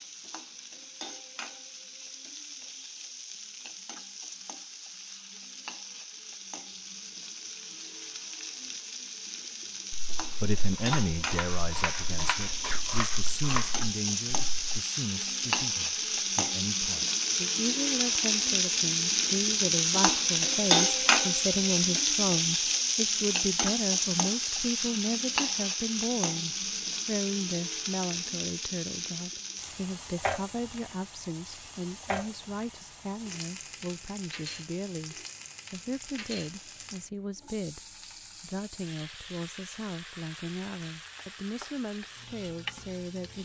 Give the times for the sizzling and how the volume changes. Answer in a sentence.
The sizzling can be heard from 0.0 to 43.3 s, getting louder then quieter.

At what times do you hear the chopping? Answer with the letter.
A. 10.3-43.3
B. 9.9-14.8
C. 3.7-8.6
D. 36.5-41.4
B.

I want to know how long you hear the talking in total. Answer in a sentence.
The talking can be heard for 33 seconds in total.